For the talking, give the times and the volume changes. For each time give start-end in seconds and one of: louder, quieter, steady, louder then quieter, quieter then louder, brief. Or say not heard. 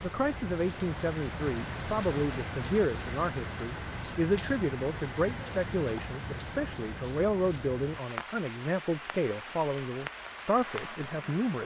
0.0-11.6 steady.